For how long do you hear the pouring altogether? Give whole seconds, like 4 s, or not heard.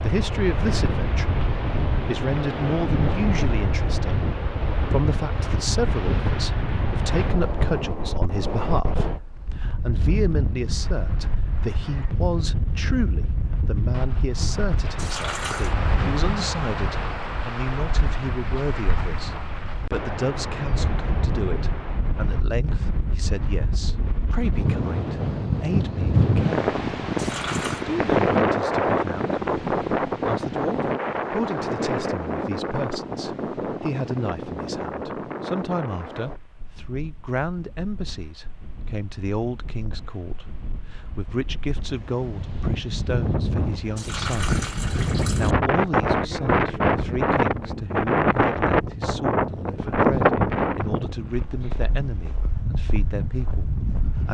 3 s.